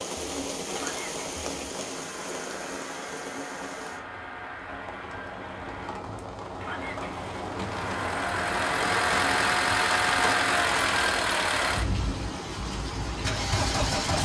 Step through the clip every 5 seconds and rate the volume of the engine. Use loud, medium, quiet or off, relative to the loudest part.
quiet, loud, loud.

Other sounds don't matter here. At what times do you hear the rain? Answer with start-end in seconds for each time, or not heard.
0.0-14.2.